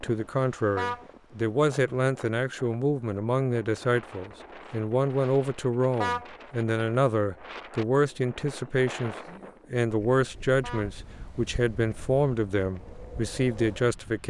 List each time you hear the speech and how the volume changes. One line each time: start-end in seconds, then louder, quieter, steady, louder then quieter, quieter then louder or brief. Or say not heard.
0.0-14.2 steady.